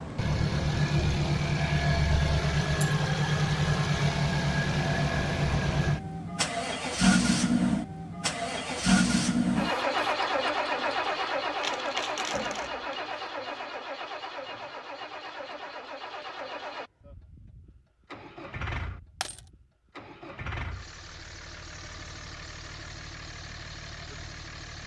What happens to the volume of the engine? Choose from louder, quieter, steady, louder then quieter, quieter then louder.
quieter.